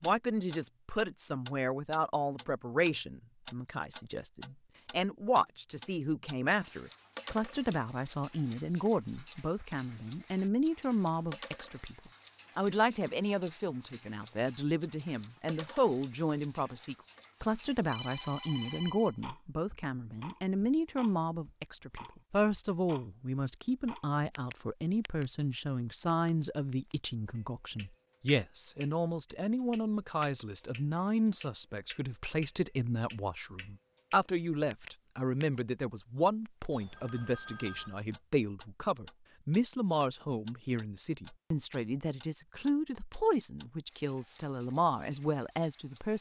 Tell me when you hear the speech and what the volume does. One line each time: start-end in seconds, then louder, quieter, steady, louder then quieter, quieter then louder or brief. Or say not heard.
0.0-46.1 steady.